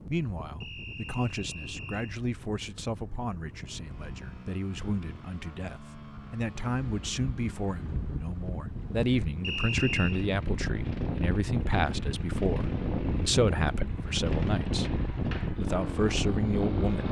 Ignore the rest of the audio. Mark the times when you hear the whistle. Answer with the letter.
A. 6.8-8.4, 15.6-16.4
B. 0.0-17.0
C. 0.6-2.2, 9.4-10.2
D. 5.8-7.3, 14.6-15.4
C.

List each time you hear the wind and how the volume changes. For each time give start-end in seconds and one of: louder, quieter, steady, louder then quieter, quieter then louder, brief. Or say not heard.
0.0-17.0 louder.